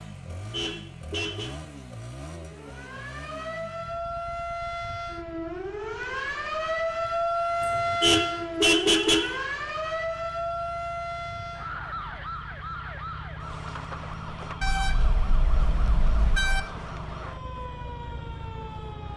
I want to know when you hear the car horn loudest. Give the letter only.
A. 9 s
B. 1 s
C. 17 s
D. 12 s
A.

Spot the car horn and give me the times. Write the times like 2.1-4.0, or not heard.
0.1-1.6, 7.6-9.4, 14.6-16.6.